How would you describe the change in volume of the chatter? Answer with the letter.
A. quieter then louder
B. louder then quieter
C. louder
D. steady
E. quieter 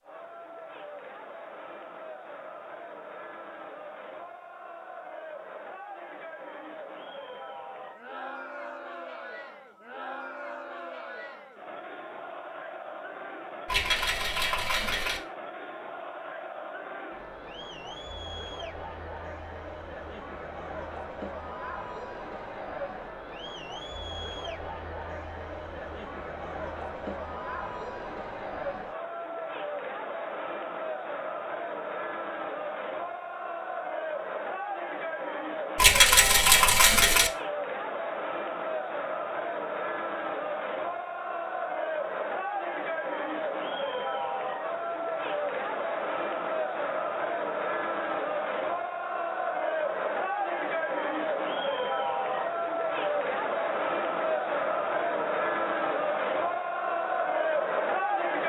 C.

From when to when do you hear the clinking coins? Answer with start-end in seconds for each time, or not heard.
13.7-15.2, 35.8-37.3.